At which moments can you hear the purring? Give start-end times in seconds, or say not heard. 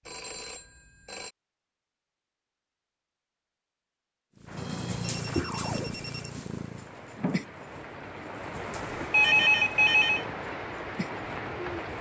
4.4-11.9.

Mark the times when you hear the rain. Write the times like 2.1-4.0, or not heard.
4.5-11.9.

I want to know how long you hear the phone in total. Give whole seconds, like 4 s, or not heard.
4 s.